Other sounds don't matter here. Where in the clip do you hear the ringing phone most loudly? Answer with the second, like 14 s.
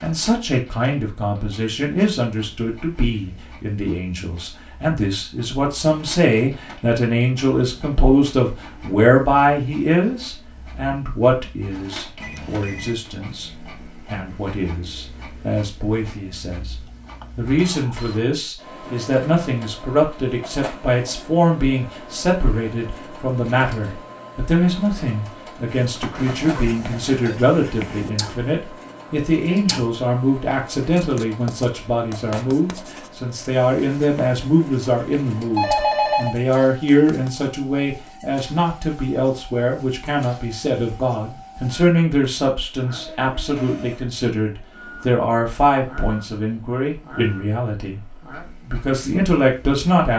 36 s.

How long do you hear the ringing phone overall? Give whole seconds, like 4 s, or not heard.
4 s.